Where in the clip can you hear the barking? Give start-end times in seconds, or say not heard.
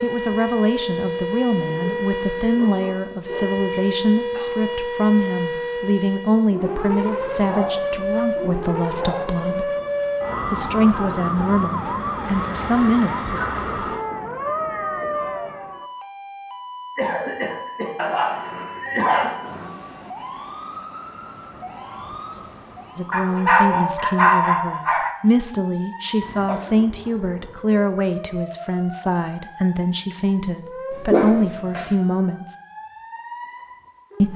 1.6-3.5, 7.3-9.2, 12.2-14.1, 17.9-19.8, 23.1-25.1, 30.9-31.9.